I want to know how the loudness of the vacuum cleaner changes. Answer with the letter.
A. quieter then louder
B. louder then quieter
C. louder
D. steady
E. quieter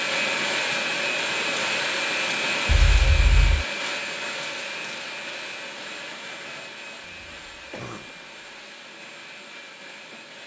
E.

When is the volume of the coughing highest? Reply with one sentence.
The loudest moment of the coughing is at 3 seconds.